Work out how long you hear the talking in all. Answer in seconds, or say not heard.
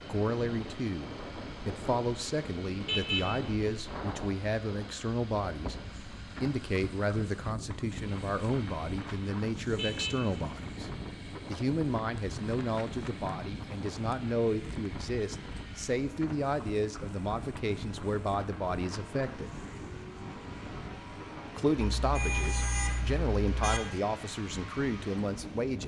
23 s.